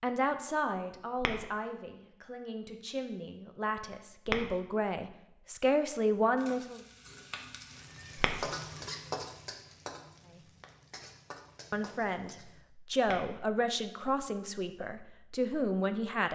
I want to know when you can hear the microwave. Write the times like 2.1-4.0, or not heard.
not heard.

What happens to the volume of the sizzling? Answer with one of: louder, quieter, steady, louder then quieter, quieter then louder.
louder then quieter.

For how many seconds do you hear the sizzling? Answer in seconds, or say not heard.
6 s.